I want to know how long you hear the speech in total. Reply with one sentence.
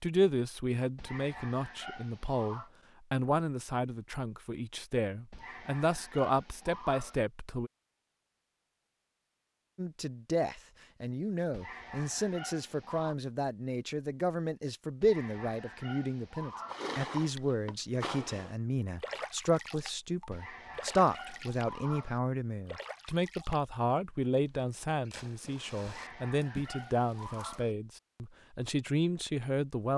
You can hear the speech for 28 seconds altogether.